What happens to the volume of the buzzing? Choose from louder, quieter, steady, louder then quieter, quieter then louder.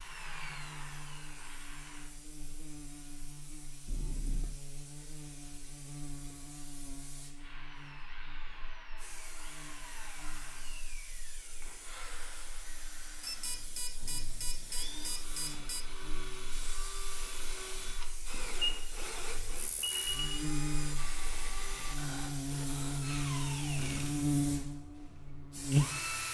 quieter then louder.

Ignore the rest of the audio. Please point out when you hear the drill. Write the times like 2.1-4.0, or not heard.
0.0-2.1, 7.3-26.2.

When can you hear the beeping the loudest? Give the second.
20 s.